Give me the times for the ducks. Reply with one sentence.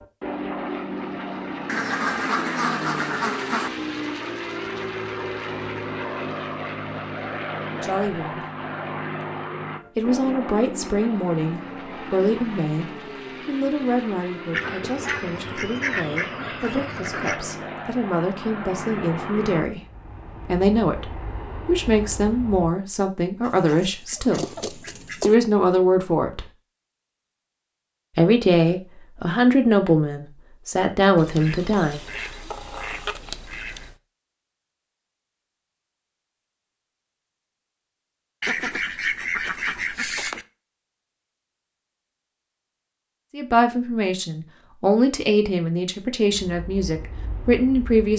You can hear the ducks from 1.6 to 3.7 s, from 14.5 to 17.4 s, from 23.4 to 25.4 s, from 31.1 to 34.0 s and from 38.4 to 40.5 s.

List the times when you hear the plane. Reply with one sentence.
You can hear the plane from 0.0 to 22.8 s and from 46.2 to 48.1 s.